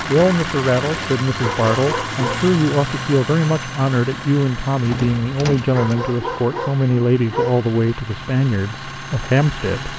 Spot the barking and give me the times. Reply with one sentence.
The barking can be heard from 1.4 to 2.5 s and from 5.7 to 7.6 s.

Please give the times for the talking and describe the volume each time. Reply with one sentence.
The talking can be heard from 0.0 to 9.9 s, at a steady volume.